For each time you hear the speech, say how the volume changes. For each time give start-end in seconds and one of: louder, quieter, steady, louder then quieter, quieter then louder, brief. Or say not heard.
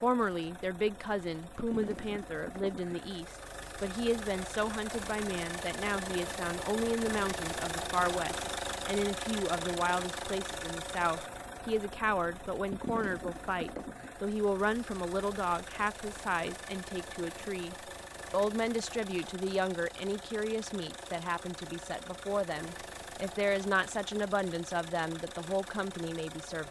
0.0-26.6 steady.